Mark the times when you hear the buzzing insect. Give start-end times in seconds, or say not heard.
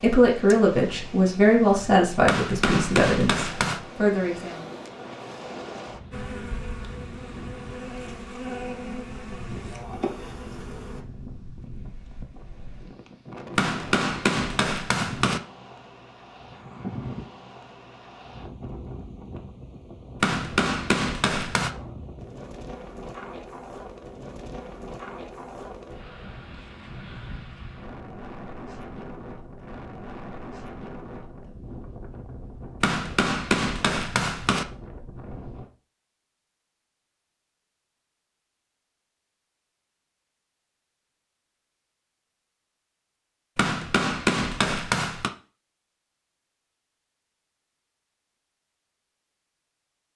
6.1-11.1.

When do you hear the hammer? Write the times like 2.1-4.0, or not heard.
2.2-3.8, 13.6-15.4, 20.2-21.7, 32.8-34.6, 43.5-45.3.